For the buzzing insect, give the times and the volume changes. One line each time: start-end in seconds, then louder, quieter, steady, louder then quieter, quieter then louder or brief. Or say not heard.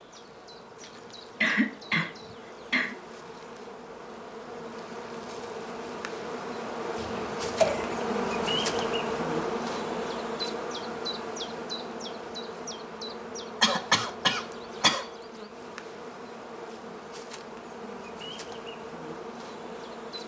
0.0-20.2 louder then quieter.